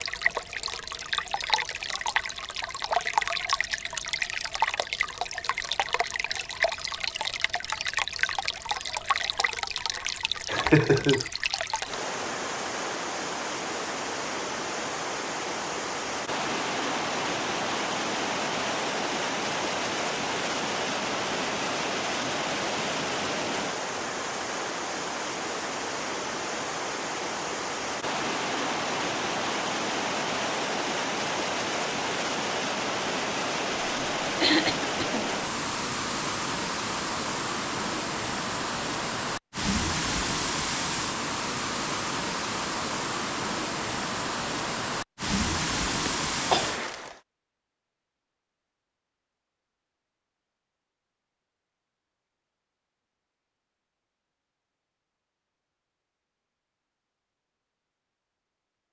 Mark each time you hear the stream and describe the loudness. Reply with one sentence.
The stream can be heard from 0.0 to 47.2 s, at a steady volume.